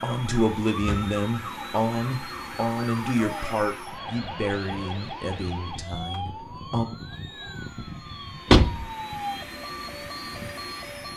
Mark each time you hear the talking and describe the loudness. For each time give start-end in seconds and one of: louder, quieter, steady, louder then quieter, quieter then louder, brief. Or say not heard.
0.0-6.8 quieter.